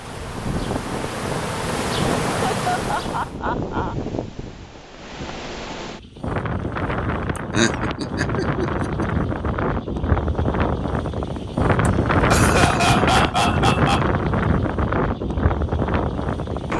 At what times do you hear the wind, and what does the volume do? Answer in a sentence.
You can hear the wind from 0.0 to 16.7 s, getting louder.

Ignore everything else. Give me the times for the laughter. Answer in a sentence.
The laughter can be heard from 2.4 to 4.0 s, from 7.5 to 9.2 s and from 11.8 to 14.1 s.